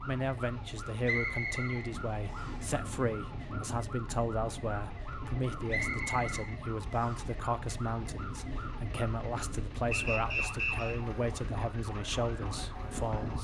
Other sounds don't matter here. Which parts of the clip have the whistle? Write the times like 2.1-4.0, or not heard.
1.0-2.6, 5.7-7.3, 9.9-10.9.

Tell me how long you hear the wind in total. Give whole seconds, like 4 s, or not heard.
13 s.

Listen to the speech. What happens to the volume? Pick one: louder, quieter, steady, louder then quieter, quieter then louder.
steady.